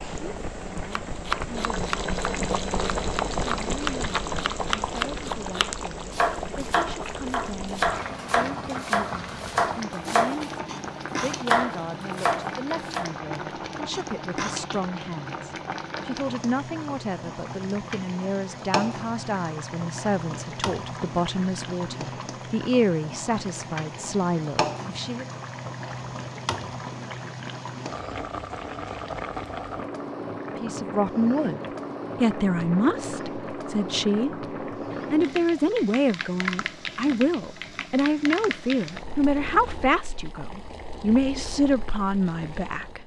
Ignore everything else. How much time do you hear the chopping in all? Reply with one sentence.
You can hear the chopping for 12 seconds altogether.